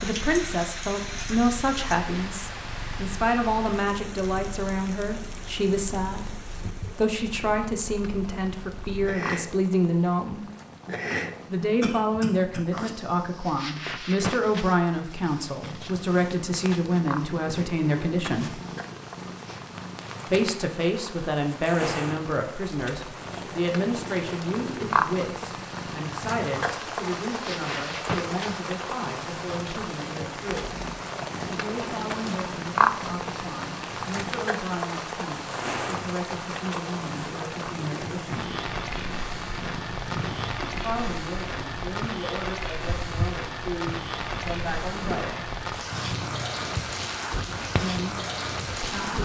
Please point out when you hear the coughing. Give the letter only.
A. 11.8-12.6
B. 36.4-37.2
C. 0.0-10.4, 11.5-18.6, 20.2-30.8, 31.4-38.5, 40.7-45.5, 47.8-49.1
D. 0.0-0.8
A.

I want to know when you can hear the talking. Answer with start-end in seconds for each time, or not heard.
0.0-10.4, 11.5-18.6, 20.2-30.8, 31.4-38.5, 40.7-45.5, 47.8-49.1.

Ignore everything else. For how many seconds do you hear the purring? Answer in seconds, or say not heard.
49 s.